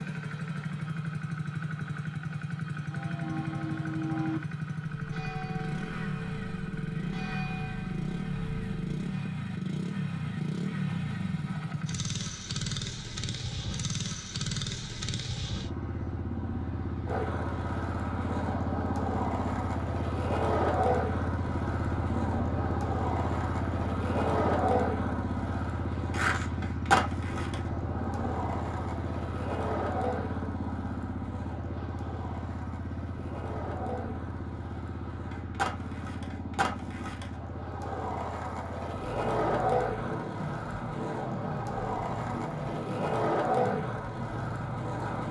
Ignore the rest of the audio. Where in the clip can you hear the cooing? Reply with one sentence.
The cooing can't be heard in this clip.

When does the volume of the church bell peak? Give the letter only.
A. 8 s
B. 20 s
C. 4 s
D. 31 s
C.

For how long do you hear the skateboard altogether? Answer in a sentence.
You can hear the skateboard for 28 seconds altogether.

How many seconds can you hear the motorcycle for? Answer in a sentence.
You can hear the motorcycle for 45 seconds altogether.